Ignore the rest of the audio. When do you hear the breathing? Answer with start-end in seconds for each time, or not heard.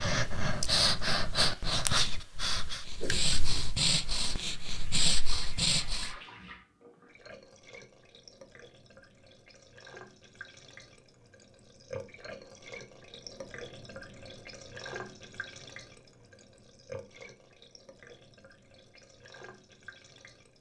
0.0-6.2.